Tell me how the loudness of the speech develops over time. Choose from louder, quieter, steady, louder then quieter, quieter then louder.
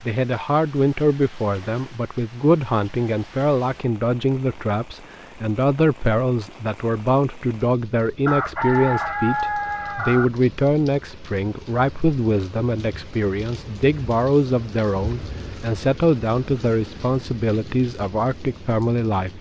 steady.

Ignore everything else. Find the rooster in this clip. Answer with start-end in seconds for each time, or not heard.
8.2-10.2.